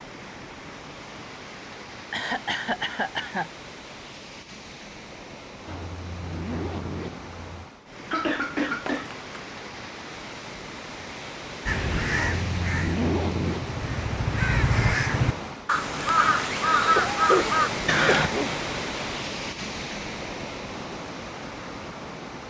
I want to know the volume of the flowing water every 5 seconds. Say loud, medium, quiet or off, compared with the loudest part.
medium, medium, medium, loud, medium.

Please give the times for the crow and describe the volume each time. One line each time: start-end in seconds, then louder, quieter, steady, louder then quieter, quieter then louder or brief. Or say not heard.
11.7-18.3 louder.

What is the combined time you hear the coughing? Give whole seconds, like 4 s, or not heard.
4 s.